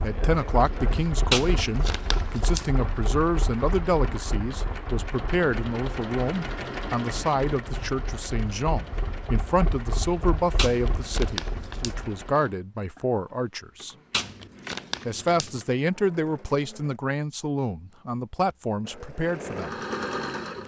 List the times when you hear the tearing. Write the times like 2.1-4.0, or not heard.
1.3-2.7, 10.6-11.9, 14.1-15.6.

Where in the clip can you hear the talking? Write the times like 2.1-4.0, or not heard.
0.0-13.9, 15.1-19.8.